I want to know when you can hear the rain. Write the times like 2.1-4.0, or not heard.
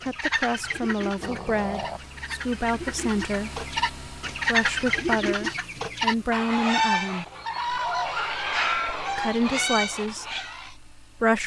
not heard.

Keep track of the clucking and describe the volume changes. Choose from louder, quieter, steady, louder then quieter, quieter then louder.
louder.